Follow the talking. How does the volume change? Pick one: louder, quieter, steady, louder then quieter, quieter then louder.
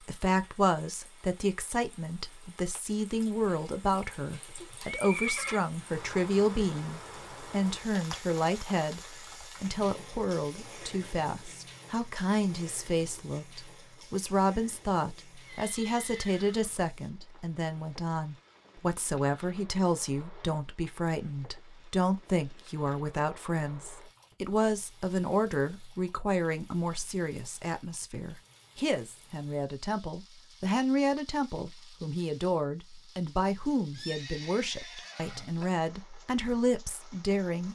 steady.